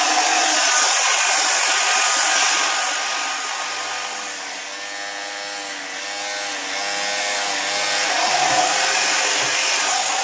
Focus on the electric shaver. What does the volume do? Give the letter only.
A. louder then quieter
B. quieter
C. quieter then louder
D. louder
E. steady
D.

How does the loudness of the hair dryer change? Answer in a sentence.
The loudness of the hair dryer goes down, then up.